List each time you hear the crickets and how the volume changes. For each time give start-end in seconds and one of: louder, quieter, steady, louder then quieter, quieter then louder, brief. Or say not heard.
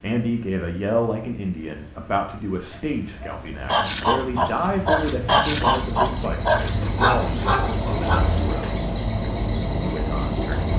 0.0-10.7 louder.